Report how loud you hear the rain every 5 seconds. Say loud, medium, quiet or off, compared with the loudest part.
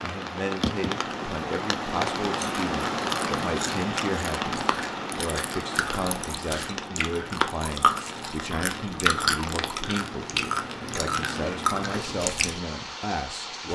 loud, medium, medium.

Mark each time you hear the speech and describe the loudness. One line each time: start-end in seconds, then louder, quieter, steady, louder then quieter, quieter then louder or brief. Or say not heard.
0.0-13.6 steady.